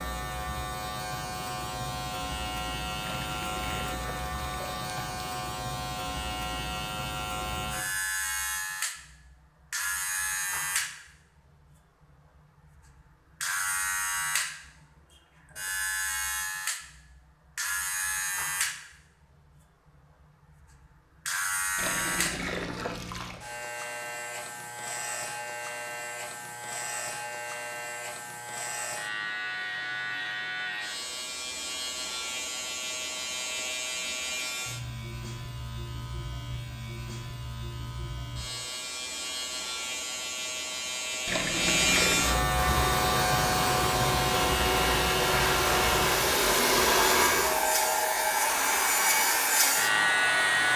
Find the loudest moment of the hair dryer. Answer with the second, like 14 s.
47 s.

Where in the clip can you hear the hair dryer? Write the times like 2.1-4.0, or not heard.
42.5-50.7.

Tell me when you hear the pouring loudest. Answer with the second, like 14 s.
42 s.